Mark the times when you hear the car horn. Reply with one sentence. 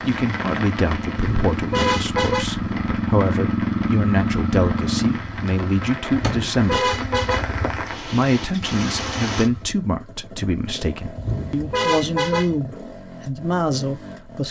You can hear the car horn from 1.1 to 2.6 s, from 6.1 to 7.7 s and from 11.2 to 12.6 s.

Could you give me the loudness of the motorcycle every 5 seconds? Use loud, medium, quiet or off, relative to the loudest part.
loud, medium, quiet.